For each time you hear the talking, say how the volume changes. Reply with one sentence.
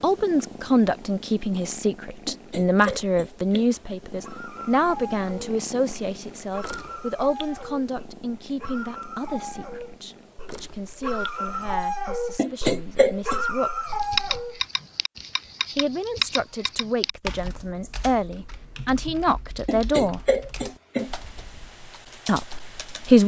The talking can be heard from 0.0 to 13.9 s, getting quieter; from 15.8 to 20.2 s, getting louder; and briefly from 22.2 to 23.2 s.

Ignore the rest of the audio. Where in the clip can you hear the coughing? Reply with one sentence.
You can hear the coughing from 2.2 to 3.7 s, from 12.3 to 13.4 s and from 19.6 to 21.1 s.